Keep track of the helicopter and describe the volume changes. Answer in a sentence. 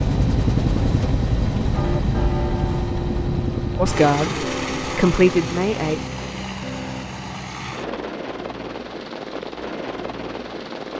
The volume of the helicopter goes down.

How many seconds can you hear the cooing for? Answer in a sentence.
The cooing can't be heard in this clip.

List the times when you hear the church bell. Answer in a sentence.
You can hear the church bell from 1.8 to 7.0 s.